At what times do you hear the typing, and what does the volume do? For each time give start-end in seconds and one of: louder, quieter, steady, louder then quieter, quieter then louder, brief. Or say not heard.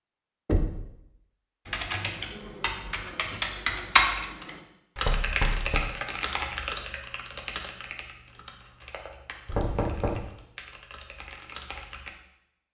1.6-12.1 quieter.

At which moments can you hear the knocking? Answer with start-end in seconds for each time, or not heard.
0.5-0.9, 5.0-5.9, 9.4-10.3.